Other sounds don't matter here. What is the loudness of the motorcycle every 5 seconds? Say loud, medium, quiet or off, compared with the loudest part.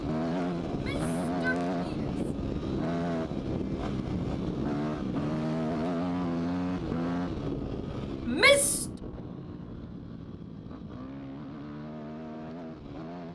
loud, loud, medium.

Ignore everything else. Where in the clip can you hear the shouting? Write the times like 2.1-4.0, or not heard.
0.7-2.1, 8.2-8.8.